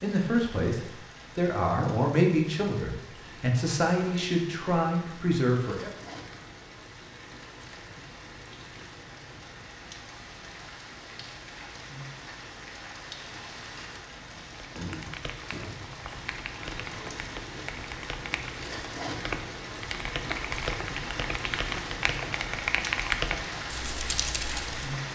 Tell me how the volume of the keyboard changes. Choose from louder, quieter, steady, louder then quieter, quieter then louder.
louder.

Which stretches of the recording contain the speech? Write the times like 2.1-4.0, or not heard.
0.0-5.9.